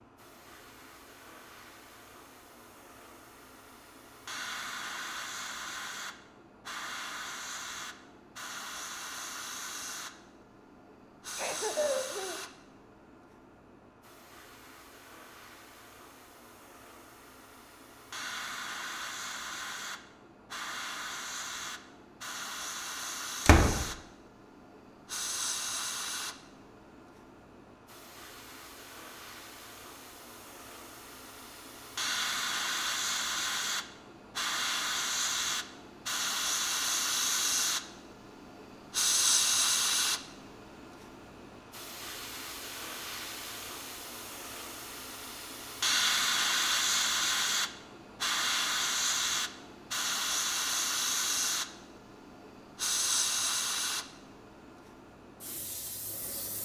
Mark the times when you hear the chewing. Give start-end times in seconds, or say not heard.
not heard.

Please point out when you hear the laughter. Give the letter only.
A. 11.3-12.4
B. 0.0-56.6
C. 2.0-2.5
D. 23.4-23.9
A.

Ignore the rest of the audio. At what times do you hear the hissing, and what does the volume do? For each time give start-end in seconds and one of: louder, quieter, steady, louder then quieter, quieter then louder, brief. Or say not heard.
0.0-56.6 louder.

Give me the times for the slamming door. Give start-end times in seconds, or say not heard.
23.4-23.9.